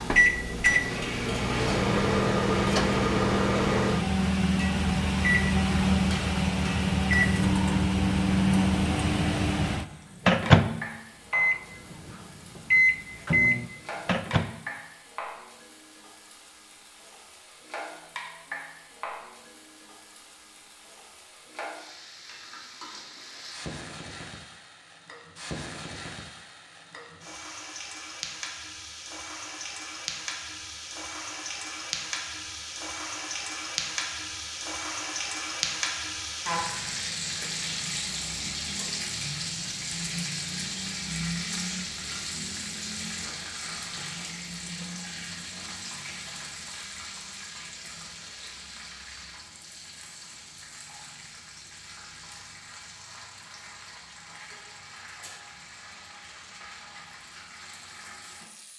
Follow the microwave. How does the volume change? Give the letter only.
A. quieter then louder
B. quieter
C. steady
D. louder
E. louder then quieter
C.